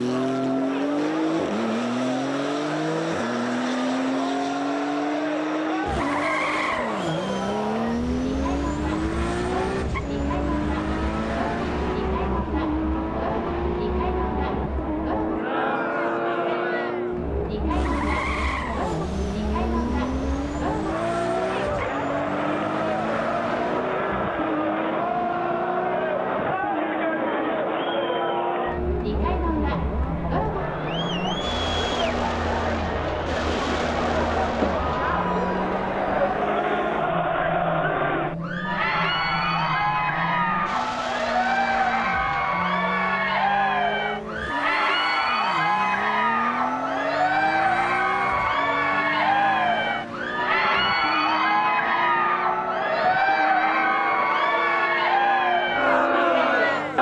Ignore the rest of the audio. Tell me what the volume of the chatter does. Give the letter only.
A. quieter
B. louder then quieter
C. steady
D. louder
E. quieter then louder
D.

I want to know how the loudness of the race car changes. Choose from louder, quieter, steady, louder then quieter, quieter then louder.
quieter.